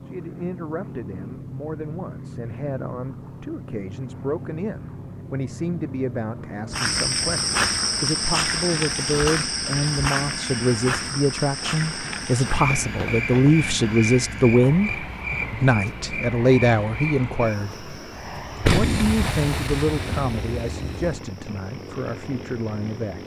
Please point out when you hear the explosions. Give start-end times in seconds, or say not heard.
18.6-21.2.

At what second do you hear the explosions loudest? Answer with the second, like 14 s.
19 s.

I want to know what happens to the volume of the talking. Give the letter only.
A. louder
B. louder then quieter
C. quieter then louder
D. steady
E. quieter
B.